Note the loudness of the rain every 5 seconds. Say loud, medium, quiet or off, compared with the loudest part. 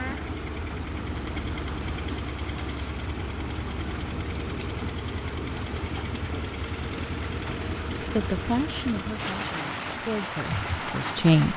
medium, medium, loud.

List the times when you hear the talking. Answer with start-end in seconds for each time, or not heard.
8.2-11.5.